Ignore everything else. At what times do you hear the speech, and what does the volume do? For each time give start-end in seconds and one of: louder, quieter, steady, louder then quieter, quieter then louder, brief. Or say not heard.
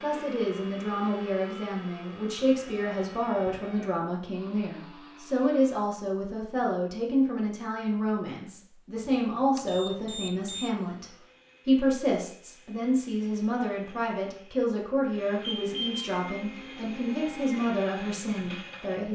0.0-19.0 steady.